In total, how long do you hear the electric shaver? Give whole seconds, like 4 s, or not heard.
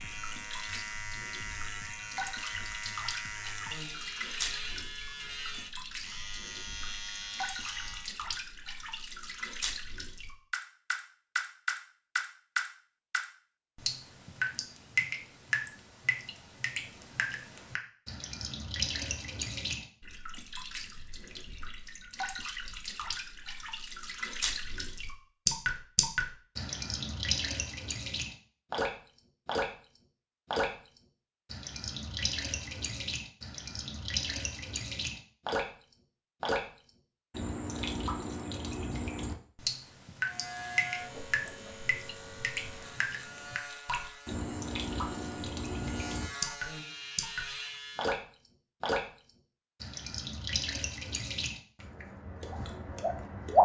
16 s.